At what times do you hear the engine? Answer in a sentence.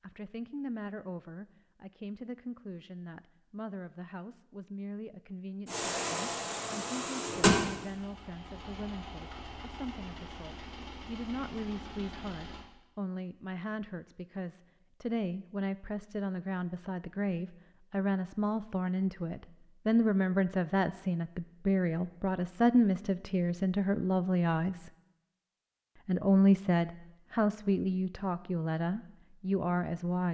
The engine can be heard from 5.7 to 12.7 s.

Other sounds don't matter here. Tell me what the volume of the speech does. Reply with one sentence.
The loudness of the speech goes up.